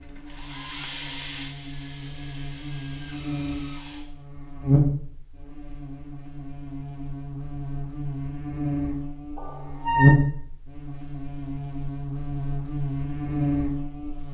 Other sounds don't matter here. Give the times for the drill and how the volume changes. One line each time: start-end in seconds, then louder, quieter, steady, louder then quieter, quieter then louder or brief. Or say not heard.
0.0-4.0 quieter.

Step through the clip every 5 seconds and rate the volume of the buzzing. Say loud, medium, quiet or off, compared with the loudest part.
medium, medium, loud.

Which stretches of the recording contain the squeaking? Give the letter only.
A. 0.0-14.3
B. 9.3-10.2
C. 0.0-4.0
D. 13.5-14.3
B.